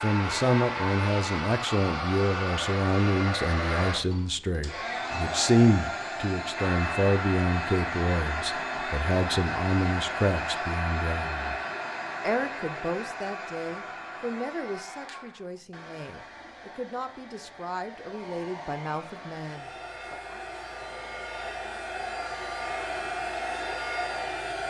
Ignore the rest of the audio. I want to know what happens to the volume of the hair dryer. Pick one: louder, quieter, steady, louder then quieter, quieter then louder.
quieter then louder.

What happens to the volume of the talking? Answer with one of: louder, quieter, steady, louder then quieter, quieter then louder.
quieter.